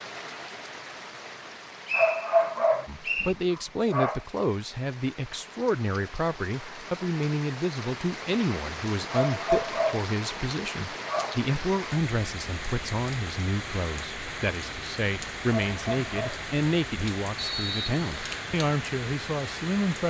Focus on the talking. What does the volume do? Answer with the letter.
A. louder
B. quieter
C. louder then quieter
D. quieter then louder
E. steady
E.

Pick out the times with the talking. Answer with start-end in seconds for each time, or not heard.
2.9-20.0.